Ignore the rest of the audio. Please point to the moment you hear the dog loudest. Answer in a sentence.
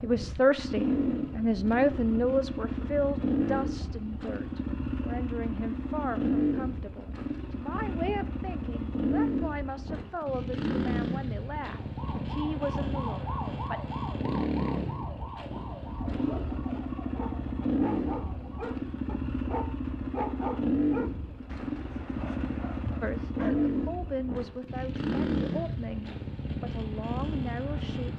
The loudest moment of the dog is at 20 seconds.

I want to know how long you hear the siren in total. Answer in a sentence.
The siren can be heard for 7 seconds in total.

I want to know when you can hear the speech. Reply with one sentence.
The speech can be heard from 0.0 to 13.8 s and from 23.0 to 28.1 s.